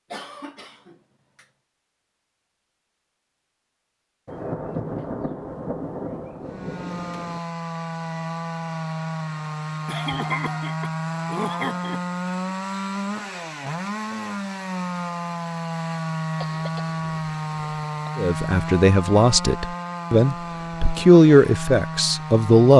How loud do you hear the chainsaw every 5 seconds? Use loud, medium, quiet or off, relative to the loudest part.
off, loud, loud, loud, loud.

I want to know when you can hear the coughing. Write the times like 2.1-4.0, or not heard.
0.1-1.4, 9.8-12.0, 16.4-17.9.